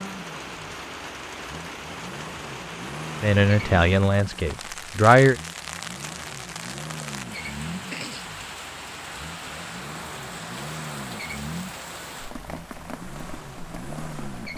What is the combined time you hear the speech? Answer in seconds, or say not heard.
2 s.